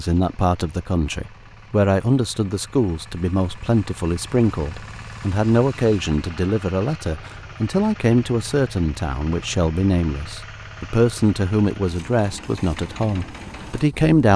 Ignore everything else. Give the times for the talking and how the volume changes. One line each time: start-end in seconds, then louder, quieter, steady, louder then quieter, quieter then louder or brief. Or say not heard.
0.0-14.3 steady.